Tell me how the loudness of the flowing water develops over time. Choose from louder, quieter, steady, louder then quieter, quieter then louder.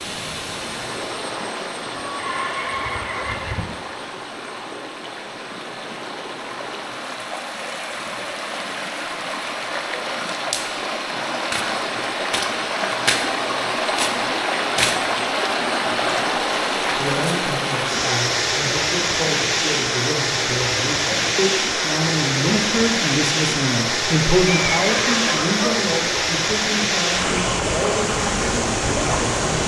louder.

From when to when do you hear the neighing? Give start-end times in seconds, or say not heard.
1.9-3.6, 24.4-25.8.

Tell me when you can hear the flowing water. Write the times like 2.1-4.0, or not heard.
0.0-29.6.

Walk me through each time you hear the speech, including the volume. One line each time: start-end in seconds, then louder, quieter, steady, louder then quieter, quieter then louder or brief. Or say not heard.
16.9-29.6 louder then quieter.